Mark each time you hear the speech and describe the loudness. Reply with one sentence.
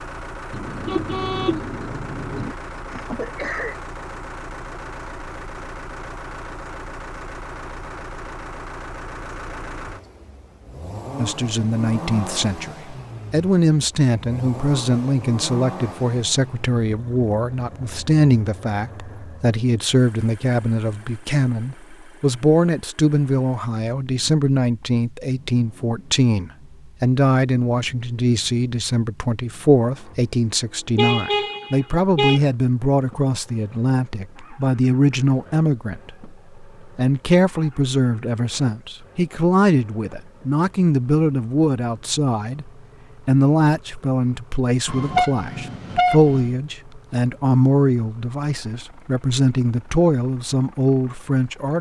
The speech can be heard from 11.2 to 51.7 s, at a steady volume.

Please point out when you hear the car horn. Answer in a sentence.
The car horn can be heard from 0.5 to 2.5 s, from 30.9 to 32.4 s and from 44.9 to 46.5 s.